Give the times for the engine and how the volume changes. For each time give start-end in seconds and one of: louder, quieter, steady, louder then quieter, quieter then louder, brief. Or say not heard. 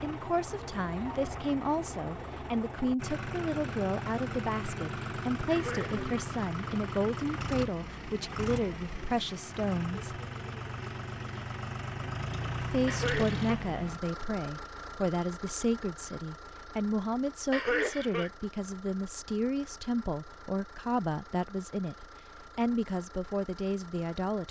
0.0-24.4 quieter.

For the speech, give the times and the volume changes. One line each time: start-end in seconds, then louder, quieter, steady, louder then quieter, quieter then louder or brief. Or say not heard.
0.0-10.2 steady
12.6-24.4 steady.